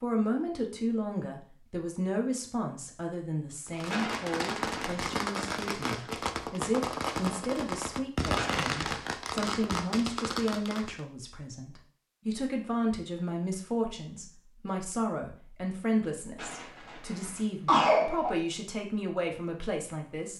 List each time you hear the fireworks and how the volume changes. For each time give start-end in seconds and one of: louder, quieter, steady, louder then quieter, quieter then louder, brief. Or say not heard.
3.6-11.1 steady.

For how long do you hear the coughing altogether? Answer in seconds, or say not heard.
4 s.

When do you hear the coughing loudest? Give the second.
18 s.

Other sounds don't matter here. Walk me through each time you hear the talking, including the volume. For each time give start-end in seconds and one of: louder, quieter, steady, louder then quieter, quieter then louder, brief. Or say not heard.
0.0-20.3 steady.